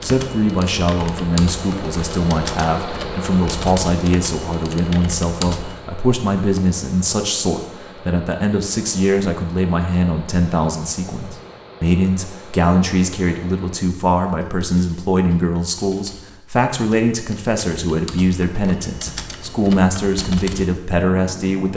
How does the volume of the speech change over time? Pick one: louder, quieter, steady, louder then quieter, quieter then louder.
steady.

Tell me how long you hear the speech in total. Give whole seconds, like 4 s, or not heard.
22 s.